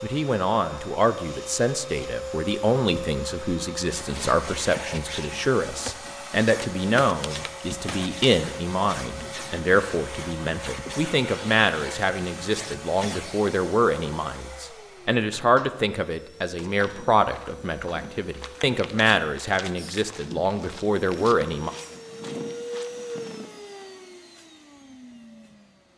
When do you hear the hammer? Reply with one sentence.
You can't hear the hammer here.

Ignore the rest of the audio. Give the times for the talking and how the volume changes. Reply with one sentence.
You can hear the talking from 0.0 to 21.7 s, at a steady volume.